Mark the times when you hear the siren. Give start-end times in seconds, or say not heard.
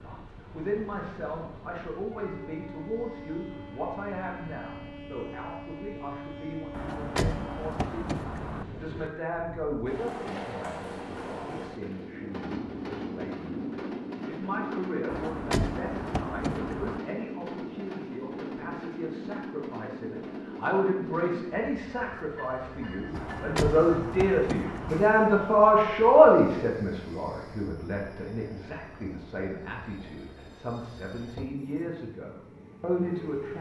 not heard.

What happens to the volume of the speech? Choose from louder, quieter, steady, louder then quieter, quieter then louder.
louder then quieter.